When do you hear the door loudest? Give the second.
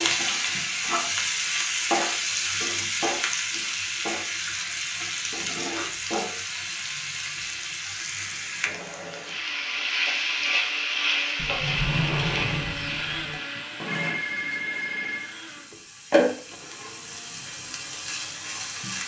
12 s.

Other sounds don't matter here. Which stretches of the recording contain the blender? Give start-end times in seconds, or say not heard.
8.2-19.0.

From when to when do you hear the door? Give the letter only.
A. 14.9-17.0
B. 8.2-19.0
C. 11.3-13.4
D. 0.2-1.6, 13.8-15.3
C.